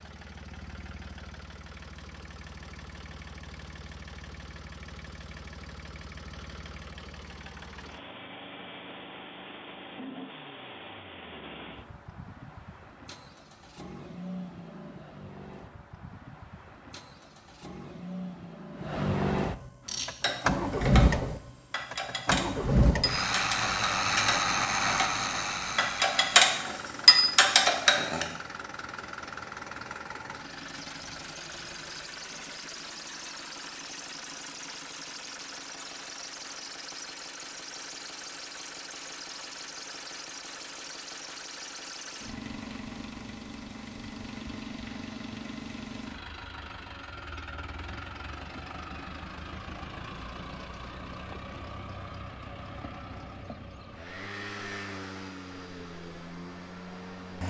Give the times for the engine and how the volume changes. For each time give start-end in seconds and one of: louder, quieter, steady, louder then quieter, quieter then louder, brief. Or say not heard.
0.0-57.4 louder then quieter.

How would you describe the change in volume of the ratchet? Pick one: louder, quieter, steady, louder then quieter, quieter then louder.
louder.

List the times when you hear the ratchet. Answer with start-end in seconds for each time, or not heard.
19.9-28.2.